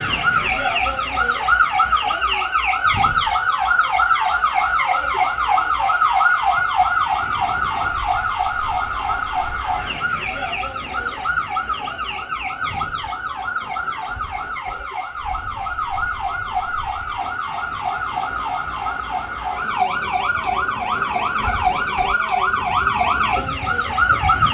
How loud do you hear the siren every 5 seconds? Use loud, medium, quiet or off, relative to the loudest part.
loud, loud, medium, medium, loud.